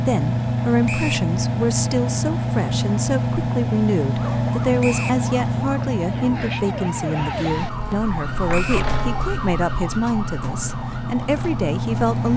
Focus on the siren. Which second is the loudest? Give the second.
9 s.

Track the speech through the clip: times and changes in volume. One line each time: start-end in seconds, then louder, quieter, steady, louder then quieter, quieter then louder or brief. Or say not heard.
0.1-12.3 steady.